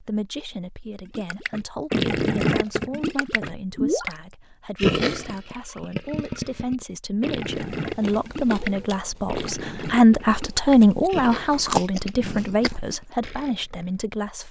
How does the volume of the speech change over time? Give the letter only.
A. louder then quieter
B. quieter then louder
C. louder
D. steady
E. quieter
A.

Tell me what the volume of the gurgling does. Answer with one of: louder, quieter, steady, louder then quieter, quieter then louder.
quieter.